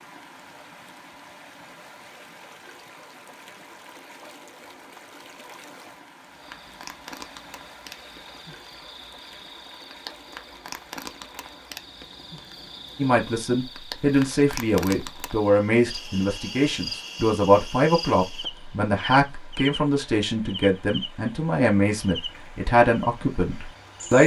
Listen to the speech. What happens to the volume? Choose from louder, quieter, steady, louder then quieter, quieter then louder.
steady.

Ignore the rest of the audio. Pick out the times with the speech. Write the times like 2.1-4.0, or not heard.
12.9-24.2.